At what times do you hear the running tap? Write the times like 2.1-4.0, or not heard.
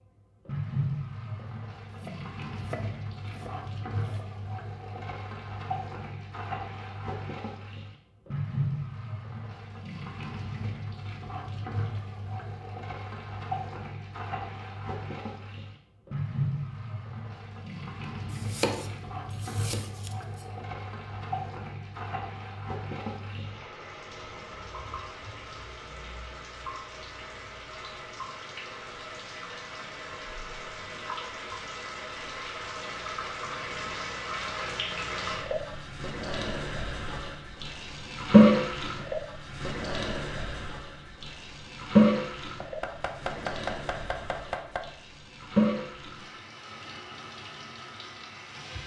0.5-48.8.